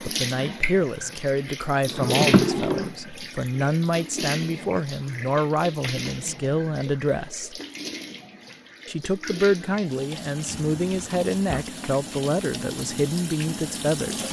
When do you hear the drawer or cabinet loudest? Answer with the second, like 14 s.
2 s.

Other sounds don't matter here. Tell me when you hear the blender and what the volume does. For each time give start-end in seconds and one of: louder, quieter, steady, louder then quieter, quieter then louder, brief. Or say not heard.
not heard.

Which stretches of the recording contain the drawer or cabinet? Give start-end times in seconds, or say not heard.
1.9-3.0, 10.4-11.7.